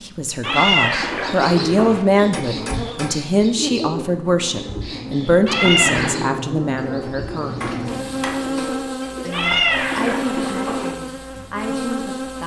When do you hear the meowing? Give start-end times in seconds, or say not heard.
0.4-2.0, 5.5-6.2, 9.3-10.9.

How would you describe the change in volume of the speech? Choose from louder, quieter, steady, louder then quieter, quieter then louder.
quieter.